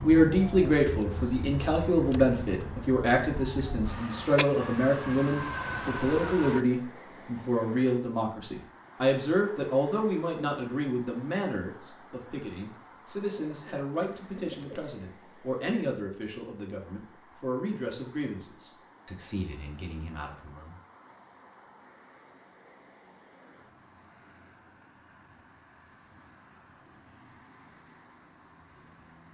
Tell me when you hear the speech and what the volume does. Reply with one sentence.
The speech can be heard from 0.0 to 20.8 s, getting quieter.